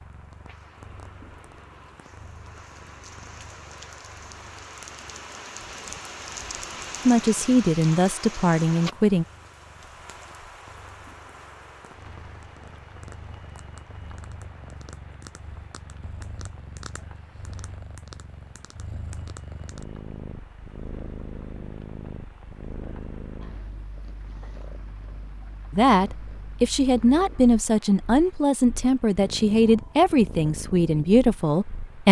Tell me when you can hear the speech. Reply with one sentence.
You can hear the speech from 7.0 to 9.2 s and from 25.7 to 32.0 s.